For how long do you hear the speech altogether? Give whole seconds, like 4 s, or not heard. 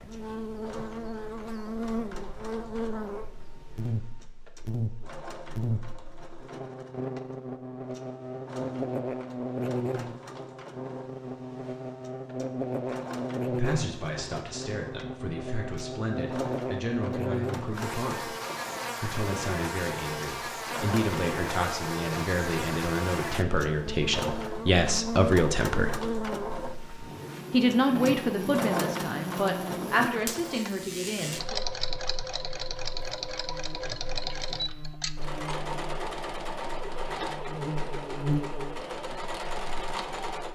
16 s.